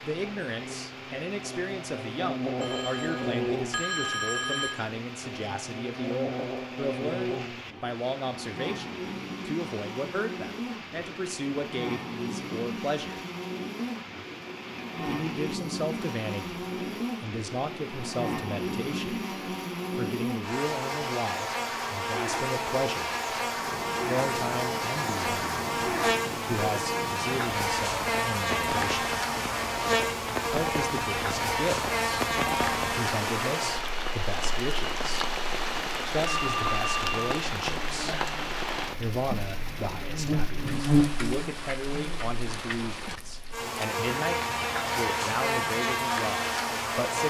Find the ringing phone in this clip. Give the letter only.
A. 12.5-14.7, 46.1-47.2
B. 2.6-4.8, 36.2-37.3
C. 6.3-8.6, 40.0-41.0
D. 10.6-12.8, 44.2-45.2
B.